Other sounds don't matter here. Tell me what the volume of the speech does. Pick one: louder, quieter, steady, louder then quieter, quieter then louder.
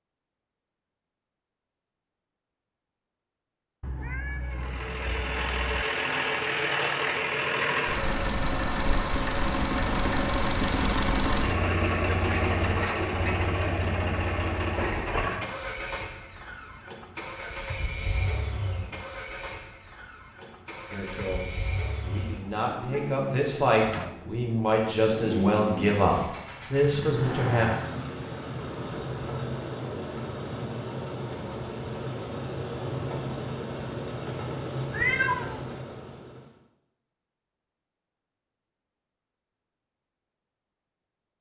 louder.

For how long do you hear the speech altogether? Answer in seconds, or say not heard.
7 s.